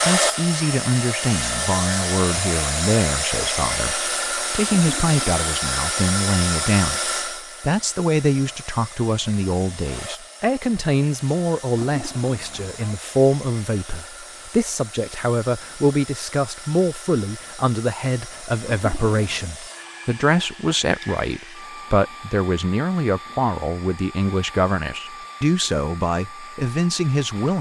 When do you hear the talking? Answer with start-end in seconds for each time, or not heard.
0.1-27.5.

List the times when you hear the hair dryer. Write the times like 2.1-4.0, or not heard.
0.0-27.5.